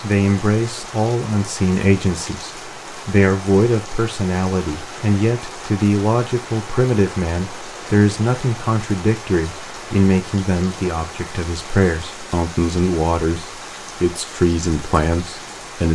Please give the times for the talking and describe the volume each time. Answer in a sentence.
You can hear the talking from 0.0 to 15.8 s, at a steady volume.